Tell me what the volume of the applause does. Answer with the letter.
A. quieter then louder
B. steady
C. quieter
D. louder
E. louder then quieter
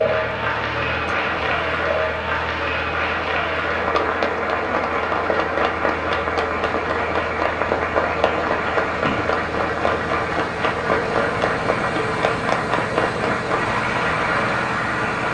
B.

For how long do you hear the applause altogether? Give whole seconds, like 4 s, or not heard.
15 s.